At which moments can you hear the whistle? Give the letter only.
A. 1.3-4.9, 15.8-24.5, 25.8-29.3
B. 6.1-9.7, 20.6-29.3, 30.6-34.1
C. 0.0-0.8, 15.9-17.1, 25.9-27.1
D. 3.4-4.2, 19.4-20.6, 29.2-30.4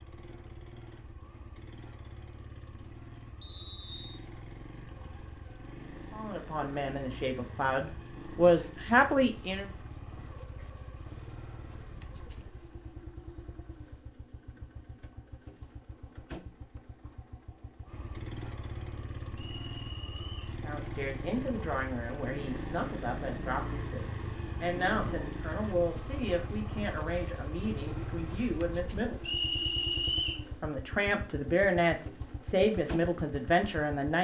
D.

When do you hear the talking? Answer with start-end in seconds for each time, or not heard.
6.1-9.7, 20.6-29.3, 30.6-34.1.